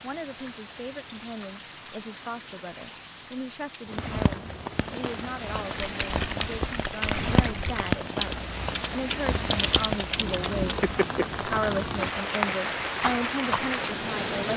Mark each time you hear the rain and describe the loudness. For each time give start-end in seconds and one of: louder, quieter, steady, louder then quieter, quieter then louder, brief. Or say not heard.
0.0-14.5 louder.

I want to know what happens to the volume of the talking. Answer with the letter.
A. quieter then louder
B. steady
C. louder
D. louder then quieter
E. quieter
C.